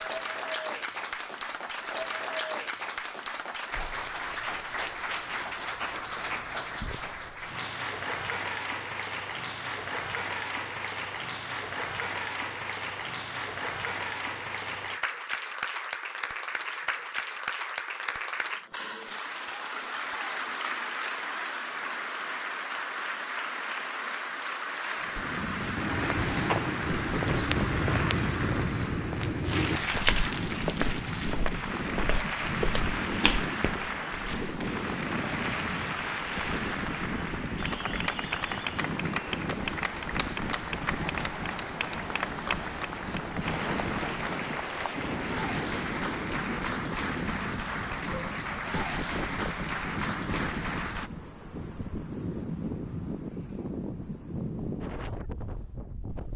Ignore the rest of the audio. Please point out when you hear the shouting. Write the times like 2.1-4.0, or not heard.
not heard.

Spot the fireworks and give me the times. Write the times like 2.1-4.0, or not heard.
not heard.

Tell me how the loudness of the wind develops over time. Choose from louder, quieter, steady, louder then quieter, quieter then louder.
steady.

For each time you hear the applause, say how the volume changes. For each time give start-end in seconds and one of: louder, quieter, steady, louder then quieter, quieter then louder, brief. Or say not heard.
0.0-51.1 steady.